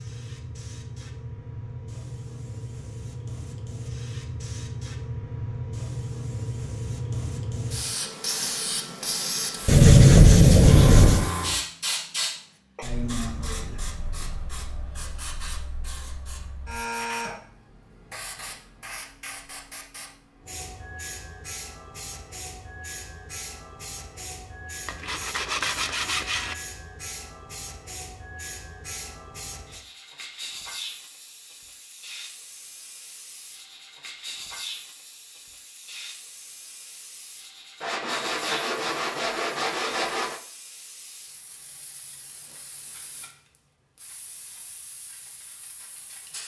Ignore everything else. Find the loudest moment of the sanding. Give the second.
10 s.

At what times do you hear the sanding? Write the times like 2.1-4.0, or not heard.
9.7-11.3, 24.9-26.6, 37.8-40.4.